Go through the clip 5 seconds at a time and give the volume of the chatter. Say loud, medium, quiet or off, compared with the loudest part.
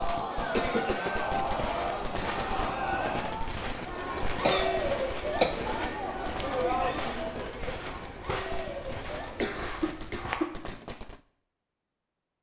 loud, loud, off.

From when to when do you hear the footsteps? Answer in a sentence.
The footsteps can be heard from 1.4 to 10.4 s.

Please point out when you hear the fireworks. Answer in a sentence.
You can hear the fireworks from 0.0 to 11.2 s.